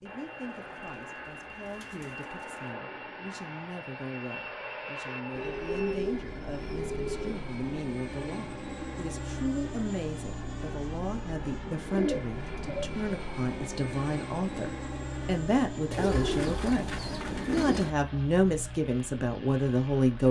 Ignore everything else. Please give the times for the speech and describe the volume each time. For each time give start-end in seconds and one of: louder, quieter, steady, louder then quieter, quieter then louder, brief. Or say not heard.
0.0-20.2 louder.